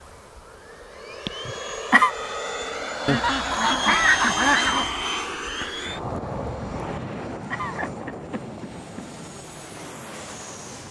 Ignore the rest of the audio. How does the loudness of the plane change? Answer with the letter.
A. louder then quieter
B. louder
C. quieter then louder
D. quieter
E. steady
A.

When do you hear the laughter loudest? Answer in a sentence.
The loudest moment of the laughter is at 2 seconds.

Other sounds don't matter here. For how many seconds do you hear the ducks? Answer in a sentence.
You can hear the ducks for 2 seconds altogether.